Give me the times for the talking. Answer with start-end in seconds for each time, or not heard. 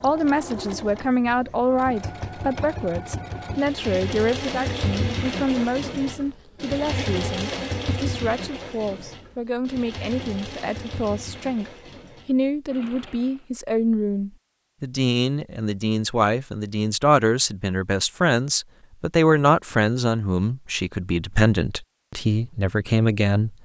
0.0-23.6.